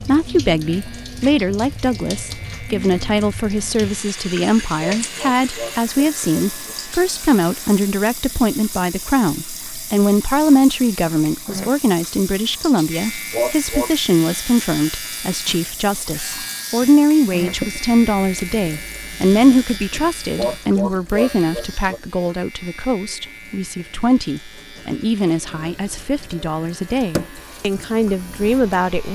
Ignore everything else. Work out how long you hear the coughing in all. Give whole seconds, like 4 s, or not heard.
4 s.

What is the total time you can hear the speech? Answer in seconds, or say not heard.
29 s.